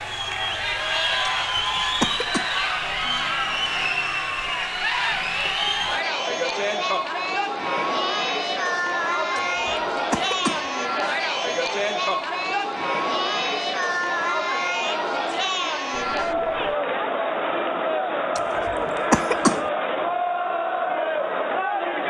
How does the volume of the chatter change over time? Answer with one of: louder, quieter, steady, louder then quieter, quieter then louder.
steady.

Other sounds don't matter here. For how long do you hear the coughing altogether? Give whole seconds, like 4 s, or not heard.
4 s.